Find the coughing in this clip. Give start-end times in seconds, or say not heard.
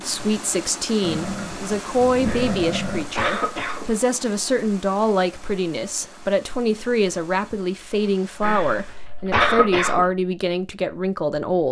2.2-4.0, 8.4-10.1.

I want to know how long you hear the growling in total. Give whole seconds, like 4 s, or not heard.
2 s.